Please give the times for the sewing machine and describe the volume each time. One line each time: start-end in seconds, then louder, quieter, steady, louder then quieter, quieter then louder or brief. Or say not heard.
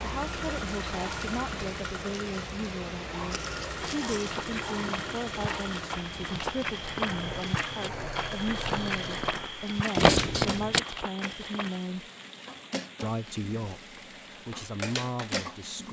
0.0-15.8 steady.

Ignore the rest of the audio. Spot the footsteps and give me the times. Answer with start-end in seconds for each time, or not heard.
3.6-11.9.